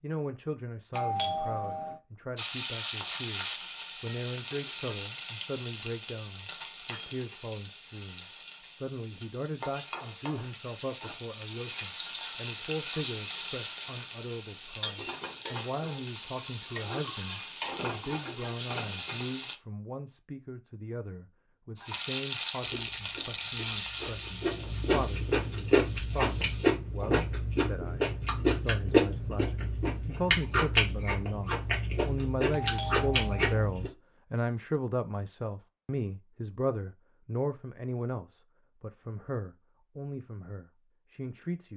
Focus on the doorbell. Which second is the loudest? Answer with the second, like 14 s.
1 s.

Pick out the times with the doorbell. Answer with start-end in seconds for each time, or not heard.
0.9-2.0, 32.5-33.5.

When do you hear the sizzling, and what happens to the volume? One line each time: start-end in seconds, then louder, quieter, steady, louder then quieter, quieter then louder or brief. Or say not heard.
2.4-19.6 quieter then louder
21.8-26.8 quieter.